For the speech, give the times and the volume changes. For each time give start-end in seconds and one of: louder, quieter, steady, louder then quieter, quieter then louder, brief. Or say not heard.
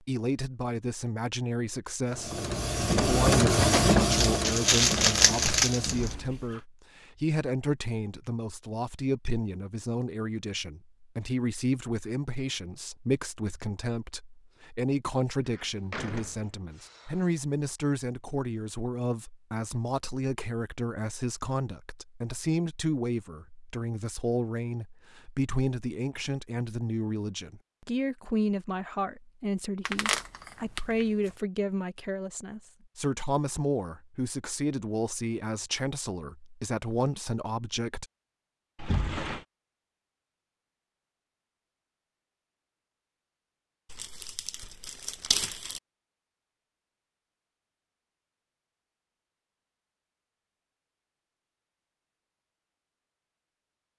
0.1-38.0 steady.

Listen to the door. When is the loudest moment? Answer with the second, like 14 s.
39 s.